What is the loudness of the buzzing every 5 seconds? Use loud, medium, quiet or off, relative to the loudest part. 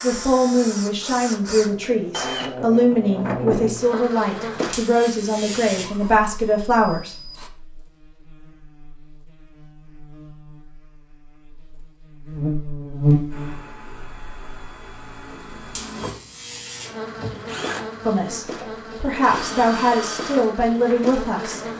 medium, quiet, loud, medium, medium.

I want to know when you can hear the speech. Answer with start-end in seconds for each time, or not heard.
0.0-7.2, 18.1-21.6.